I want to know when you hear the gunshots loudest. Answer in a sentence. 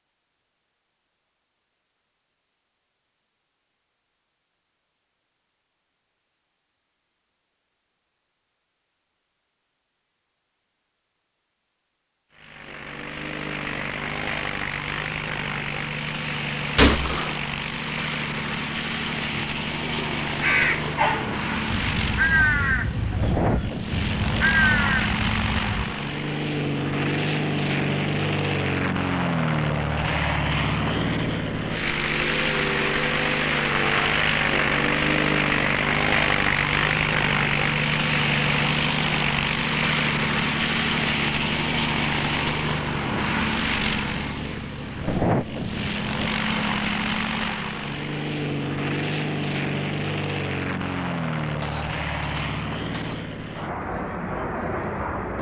The loudest moment of the gunshots is at 17 seconds.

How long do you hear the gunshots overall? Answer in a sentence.
You can hear the gunshots for 2 seconds altogether.